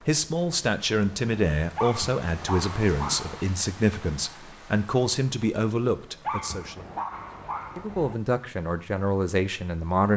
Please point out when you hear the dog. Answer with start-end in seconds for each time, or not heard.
1.8-3.5, 6.2-8.2.